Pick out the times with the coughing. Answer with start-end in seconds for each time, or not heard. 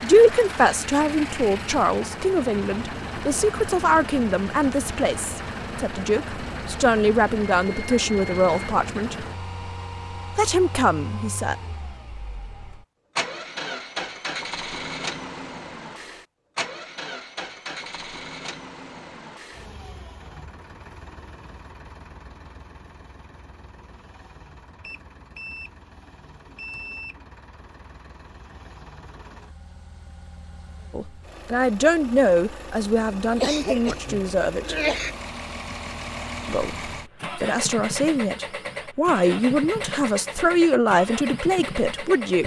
33.4-35.1.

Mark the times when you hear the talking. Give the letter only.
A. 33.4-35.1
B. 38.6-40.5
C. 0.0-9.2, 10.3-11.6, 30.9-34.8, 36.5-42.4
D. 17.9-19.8
C.